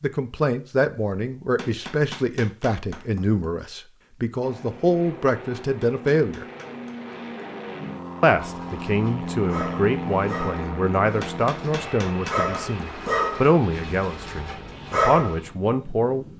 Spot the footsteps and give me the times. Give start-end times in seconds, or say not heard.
not heard.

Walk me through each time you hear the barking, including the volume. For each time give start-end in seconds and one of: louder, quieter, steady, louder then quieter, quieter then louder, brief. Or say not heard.
8.4-15.3 louder then quieter.